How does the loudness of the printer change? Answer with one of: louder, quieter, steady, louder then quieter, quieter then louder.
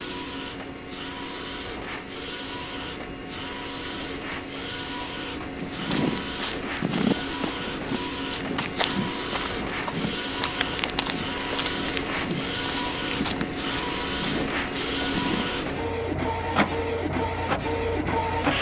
louder.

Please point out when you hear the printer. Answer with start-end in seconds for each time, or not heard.
0.0-18.5.